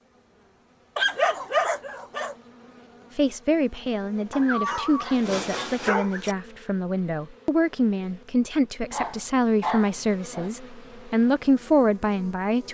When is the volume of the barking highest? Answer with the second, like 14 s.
1 s.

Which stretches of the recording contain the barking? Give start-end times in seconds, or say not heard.
0.9-2.4, 4.3-6.3, 8.9-10.5.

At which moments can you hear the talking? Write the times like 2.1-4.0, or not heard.
3.1-12.7.